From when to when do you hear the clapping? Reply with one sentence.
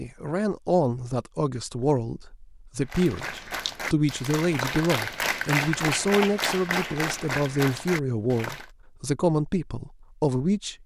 The clapping can be heard from 2.8 to 8.7 s.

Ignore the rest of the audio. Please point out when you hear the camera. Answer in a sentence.
The camera can be heard from 2.9 to 3.8 s.